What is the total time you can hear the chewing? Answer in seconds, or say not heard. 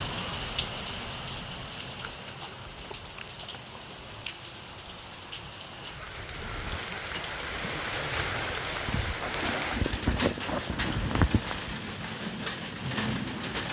5 s.